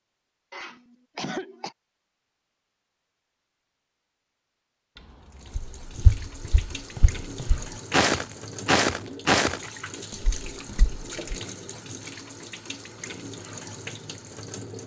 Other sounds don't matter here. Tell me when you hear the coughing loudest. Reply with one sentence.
The loudest moment of the coughing is at 1 second.